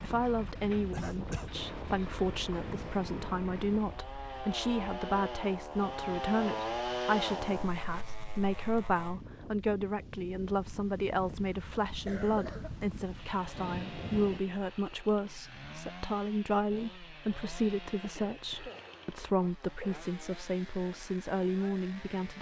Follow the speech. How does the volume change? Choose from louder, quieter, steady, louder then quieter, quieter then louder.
steady.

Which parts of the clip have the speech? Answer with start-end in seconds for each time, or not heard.
0.0-22.3.